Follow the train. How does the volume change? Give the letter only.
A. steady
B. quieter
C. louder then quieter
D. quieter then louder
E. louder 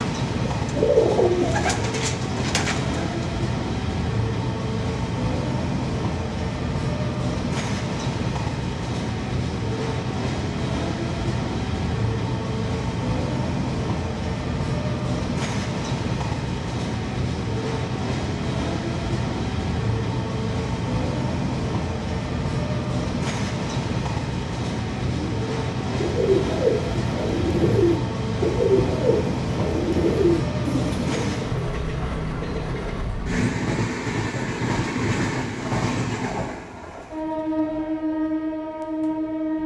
A.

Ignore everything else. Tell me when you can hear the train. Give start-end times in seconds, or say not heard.
0.0-39.6.